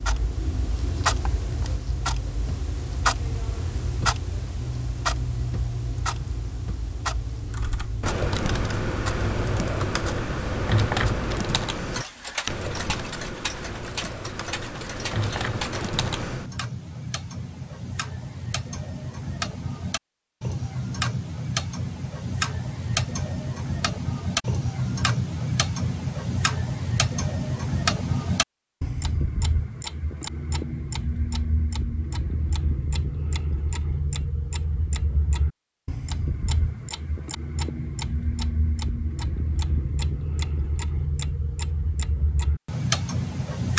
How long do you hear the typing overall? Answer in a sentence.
You can hear the typing for 9 seconds altogether.